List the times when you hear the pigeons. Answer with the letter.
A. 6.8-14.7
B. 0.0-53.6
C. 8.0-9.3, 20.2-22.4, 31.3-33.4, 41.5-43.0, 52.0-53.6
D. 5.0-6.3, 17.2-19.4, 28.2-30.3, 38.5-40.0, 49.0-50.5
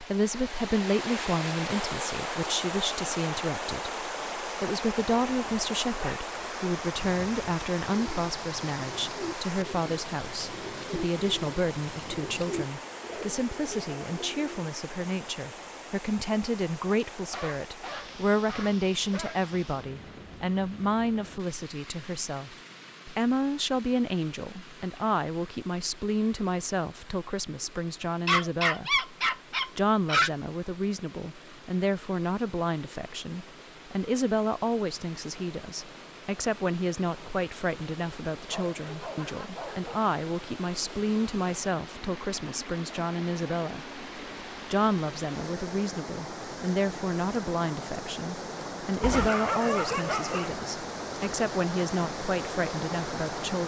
A.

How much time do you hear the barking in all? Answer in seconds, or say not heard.
9 s.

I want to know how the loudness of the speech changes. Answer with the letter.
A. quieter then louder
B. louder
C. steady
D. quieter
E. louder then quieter
C.